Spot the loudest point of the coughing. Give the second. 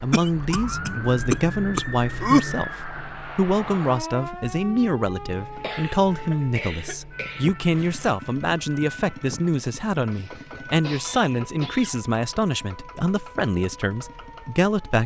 2 s.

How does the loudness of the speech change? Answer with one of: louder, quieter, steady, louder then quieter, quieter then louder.
steady.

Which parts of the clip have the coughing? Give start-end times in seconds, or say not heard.
0.1-2.4, 5.4-8.1, 10.1-12.1.